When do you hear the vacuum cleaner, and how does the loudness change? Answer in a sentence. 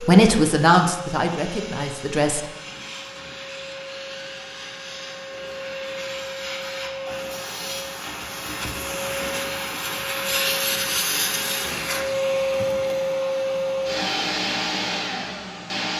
The vacuum cleaner can be heard from 0.0 to 15.9 s, getting louder.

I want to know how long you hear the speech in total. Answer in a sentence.
You can hear the speech for 2 seconds altogether.